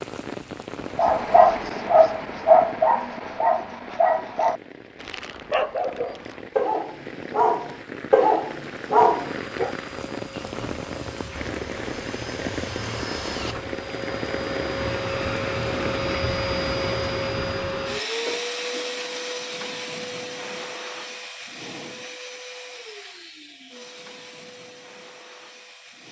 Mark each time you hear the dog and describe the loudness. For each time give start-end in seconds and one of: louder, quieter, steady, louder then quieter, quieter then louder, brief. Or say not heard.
0.9-9.7 quieter then louder.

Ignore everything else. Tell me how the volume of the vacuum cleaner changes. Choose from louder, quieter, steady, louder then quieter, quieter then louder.
louder then quieter.